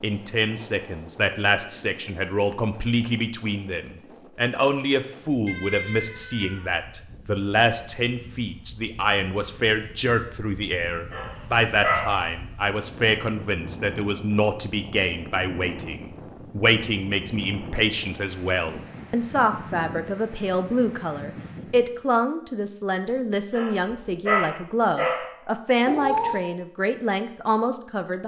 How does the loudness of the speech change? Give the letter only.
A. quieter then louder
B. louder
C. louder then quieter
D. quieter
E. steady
E.